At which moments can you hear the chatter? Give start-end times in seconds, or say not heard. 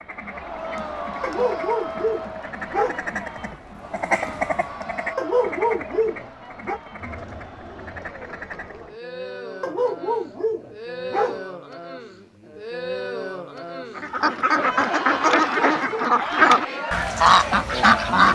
0.1-18.3.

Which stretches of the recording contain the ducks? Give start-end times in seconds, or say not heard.
0.0-8.9, 13.9-18.3.